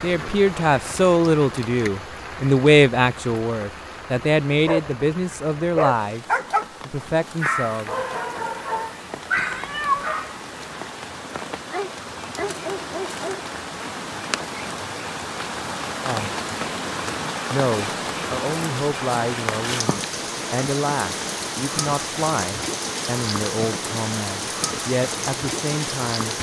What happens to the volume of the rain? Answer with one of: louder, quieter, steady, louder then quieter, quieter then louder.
louder.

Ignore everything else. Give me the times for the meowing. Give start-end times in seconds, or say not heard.
9.3-10.1.